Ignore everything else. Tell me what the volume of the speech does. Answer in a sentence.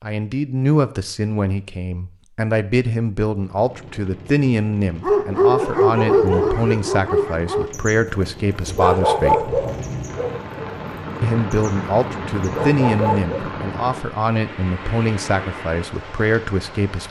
The volume of the speech stays about the same.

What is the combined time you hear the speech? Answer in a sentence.
You can hear the speech for 15 seconds altogether.